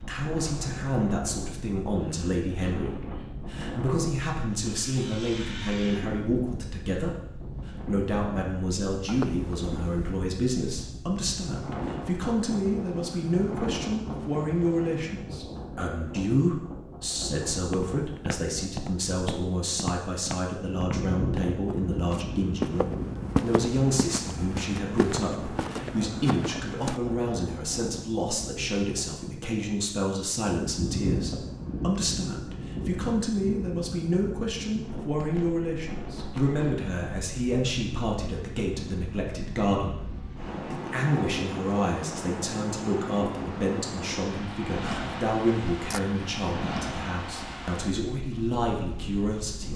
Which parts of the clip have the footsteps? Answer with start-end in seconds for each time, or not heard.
17.5-27.0.